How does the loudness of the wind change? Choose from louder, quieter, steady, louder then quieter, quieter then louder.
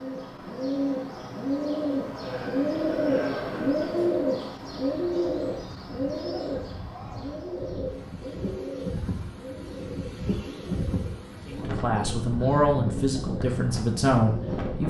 louder.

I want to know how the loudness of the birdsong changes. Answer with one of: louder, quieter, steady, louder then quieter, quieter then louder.
quieter.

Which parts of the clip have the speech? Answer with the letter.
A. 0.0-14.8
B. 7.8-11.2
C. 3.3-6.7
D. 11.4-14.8
D.